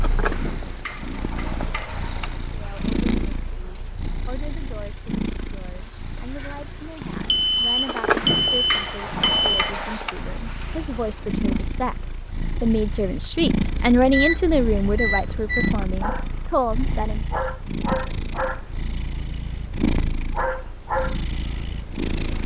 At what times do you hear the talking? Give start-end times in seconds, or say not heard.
2.5-17.2.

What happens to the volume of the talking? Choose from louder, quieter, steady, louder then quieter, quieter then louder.
louder.